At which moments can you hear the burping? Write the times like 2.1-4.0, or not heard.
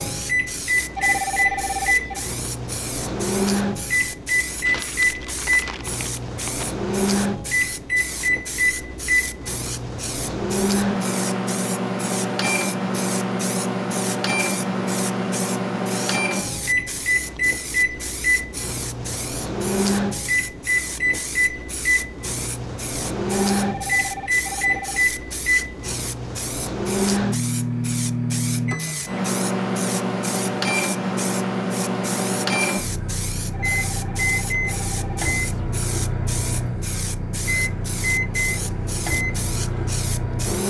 not heard.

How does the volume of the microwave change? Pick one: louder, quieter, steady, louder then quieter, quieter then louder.
steady.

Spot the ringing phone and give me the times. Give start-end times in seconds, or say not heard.
0.9-2.2, 23.3-25.1, 33.5-35.3.